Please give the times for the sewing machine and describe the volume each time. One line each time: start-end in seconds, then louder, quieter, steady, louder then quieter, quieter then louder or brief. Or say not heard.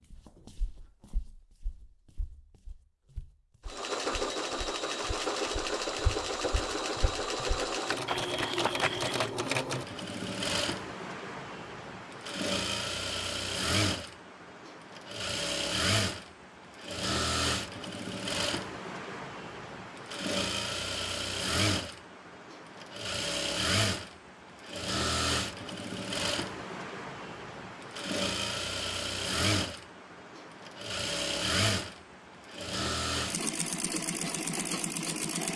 3.6-35.5 steady.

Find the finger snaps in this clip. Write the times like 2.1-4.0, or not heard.
not heard.